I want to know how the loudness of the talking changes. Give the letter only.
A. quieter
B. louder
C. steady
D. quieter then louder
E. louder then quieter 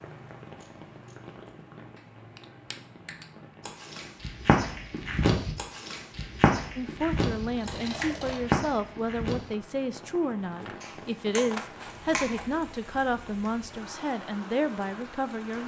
C.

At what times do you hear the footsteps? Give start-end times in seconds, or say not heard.
3.6-9.5.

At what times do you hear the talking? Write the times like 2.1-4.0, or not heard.
6.8-15.6.